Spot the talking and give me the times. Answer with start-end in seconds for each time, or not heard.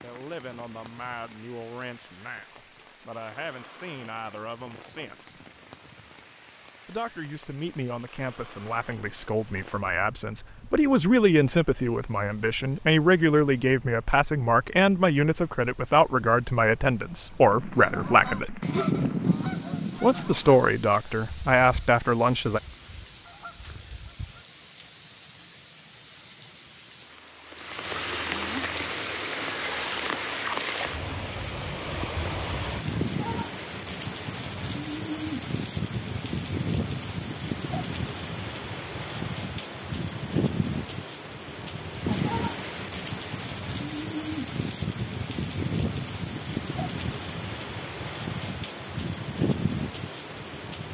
0.0-5.3, 6.8-18.6, 20.0-22.6.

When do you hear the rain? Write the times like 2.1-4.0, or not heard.
0.0-50.8.